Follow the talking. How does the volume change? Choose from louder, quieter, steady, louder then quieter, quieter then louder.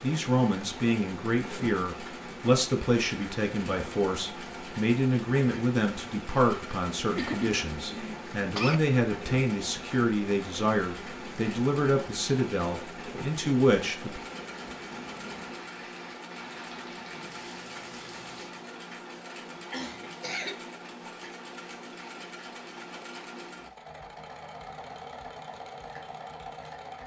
steady.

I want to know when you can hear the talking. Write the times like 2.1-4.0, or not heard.
0.0-14.2.